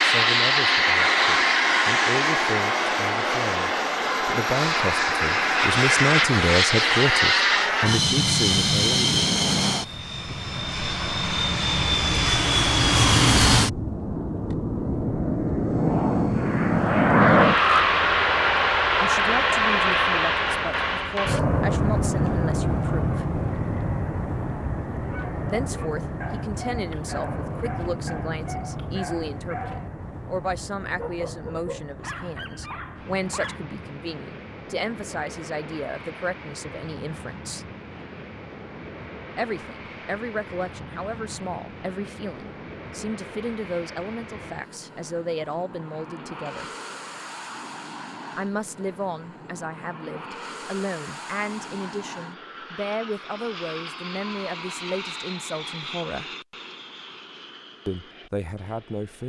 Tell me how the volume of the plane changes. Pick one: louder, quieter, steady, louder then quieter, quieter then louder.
quieter.